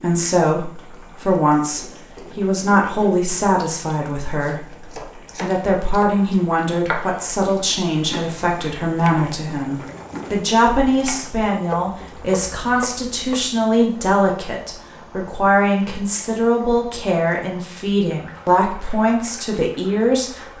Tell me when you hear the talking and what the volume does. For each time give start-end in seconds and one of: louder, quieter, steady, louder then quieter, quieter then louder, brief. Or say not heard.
0.0-20.4 steady.